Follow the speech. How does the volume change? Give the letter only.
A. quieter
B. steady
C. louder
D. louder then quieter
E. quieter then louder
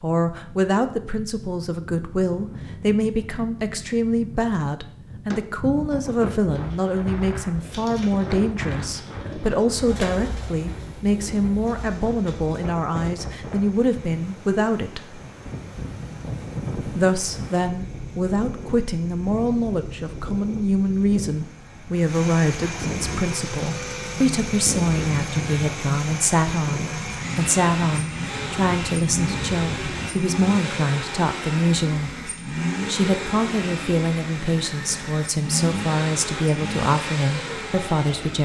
B.